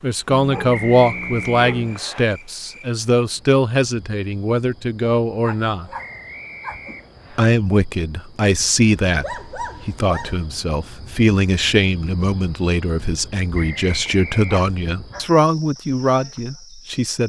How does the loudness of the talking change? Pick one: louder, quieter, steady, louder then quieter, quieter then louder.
steady.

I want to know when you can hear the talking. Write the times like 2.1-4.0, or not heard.
0.0-5.8, 7.3-17.2.